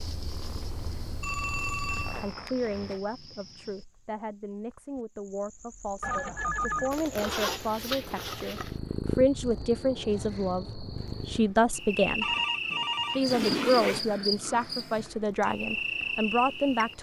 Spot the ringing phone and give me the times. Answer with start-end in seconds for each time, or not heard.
1.2-2.3, 6.0-7.0, 12.2-13.2.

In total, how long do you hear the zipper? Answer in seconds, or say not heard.
4 s.